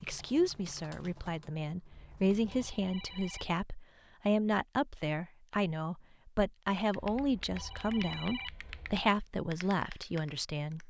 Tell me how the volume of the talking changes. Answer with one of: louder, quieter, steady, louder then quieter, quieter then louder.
steady.